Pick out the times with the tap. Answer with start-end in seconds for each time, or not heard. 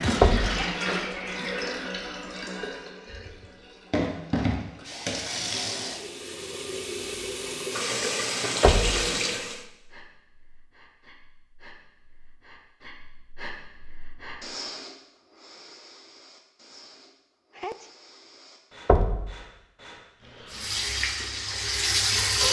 0.0-9.7, 20.5-22.4.